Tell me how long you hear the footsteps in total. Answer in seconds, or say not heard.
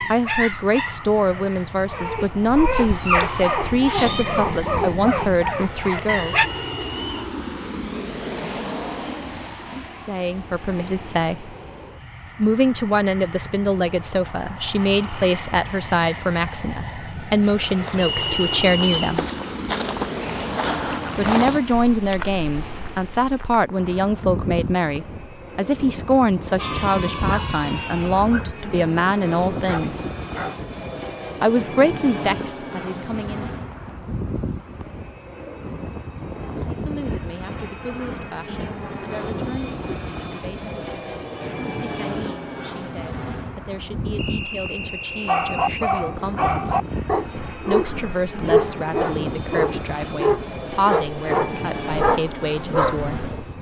6 s.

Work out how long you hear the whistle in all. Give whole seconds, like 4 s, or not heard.
4 s.